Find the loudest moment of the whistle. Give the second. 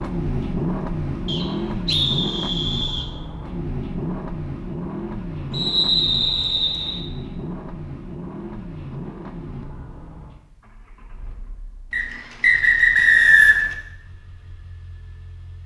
13 s.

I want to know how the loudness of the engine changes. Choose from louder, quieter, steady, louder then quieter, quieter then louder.
quieter.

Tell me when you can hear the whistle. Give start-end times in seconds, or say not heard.
1.2-3.1, 5.5-7.0, 11.9-13.7.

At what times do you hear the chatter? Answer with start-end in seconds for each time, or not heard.
not heard.